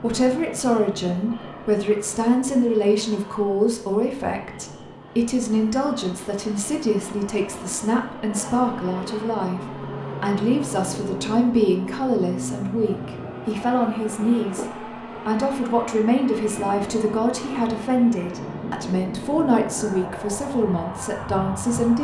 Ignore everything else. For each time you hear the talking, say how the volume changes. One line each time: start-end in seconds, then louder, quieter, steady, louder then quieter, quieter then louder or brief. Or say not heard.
0.0-21.9 steady.